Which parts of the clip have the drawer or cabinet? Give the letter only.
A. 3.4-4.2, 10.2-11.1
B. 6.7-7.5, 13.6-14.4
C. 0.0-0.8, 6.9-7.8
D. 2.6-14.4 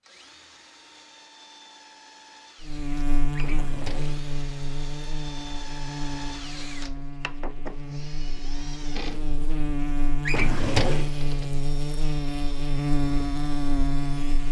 A.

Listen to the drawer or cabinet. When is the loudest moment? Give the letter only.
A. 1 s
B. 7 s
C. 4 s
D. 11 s
D.